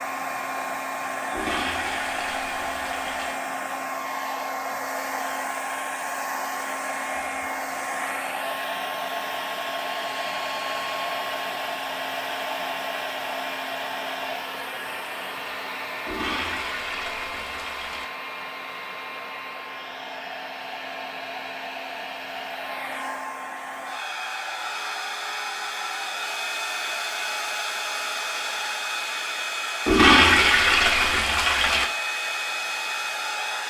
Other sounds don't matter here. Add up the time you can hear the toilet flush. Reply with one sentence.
The toilet flush can be heard for 6 seconds in total.